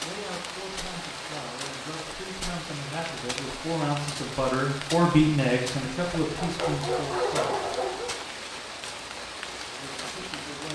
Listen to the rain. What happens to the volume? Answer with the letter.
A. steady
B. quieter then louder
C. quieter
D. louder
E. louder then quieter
A.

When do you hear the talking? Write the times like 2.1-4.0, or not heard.
0.0-7.5, 9.8-10.6.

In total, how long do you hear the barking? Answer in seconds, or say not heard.
2 s.